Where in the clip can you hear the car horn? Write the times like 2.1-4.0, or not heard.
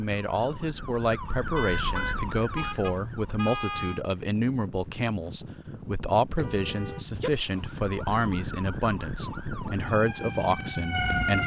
1.6-4.0, 6.3-7.3.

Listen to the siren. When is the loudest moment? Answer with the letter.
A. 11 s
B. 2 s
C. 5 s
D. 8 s
A.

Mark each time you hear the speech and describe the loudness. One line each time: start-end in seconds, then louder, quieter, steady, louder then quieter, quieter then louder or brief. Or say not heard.
0.0-11.4 steady.